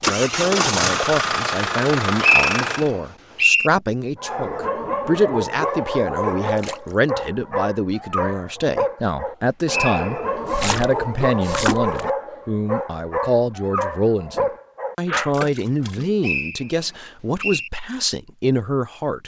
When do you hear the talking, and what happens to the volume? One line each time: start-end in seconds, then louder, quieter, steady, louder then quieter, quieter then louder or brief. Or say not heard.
0.1-19.2 steady.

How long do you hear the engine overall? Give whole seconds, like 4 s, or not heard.
3 s.